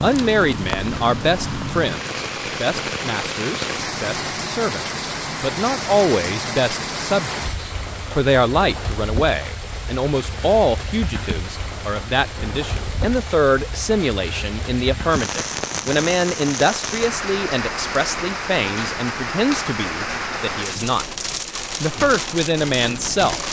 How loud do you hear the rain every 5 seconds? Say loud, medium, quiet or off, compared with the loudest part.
loud, loud, medium, loud, loud.